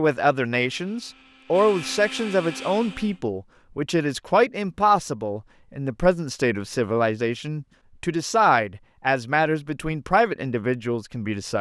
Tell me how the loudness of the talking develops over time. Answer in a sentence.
The loudness of the talking stays about the same.